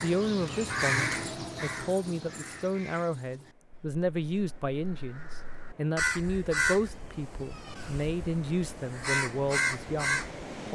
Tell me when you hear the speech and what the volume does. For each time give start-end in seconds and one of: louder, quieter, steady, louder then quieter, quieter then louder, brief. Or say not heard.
0.0-10.7 steady.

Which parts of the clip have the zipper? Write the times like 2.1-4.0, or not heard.
not heard.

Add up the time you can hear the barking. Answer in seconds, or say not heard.
not heard.